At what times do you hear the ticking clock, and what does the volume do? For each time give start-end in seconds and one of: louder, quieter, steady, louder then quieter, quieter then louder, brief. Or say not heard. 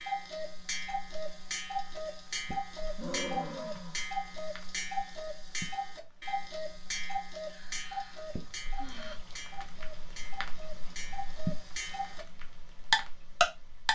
0.0-12.2 quieter
12.9-13.9 brief.